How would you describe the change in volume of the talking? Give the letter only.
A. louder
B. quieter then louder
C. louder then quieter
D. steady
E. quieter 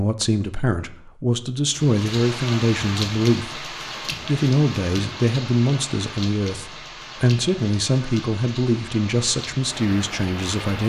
D.